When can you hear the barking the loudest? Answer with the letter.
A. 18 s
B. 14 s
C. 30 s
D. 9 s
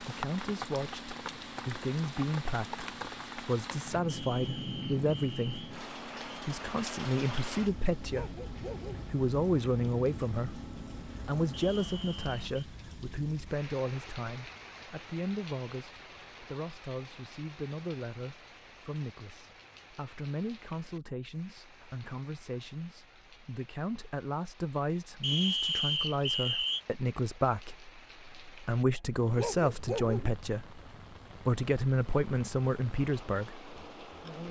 C.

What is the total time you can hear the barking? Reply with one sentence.
You can hear the barking for 2 seconds altogether.